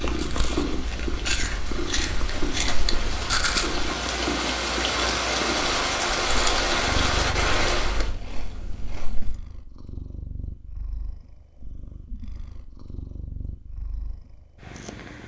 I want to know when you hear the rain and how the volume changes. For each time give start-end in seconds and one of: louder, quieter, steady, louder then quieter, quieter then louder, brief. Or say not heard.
0.1-8.2 louder.